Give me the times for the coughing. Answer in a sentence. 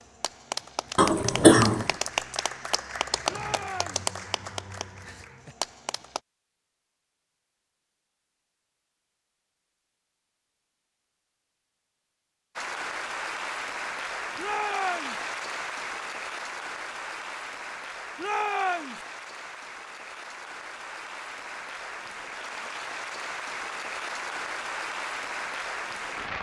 You can hear the coughing from 0.9 to 1.9 s.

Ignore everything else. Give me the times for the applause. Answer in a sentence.
The applause can be heard from 0.0 to 6.2 s and from 12.6 to 26.3 s.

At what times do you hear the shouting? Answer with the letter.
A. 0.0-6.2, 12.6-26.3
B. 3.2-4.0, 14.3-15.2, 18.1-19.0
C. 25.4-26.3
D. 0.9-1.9
B.